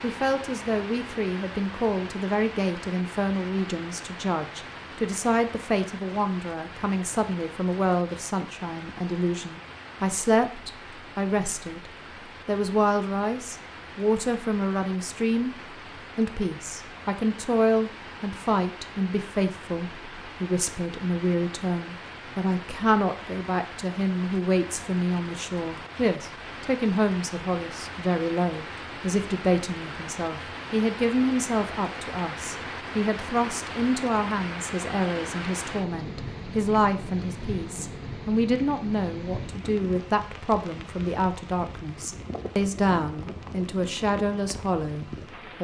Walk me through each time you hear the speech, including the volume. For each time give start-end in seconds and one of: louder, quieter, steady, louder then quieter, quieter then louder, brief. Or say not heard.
0.0-45.5 steady.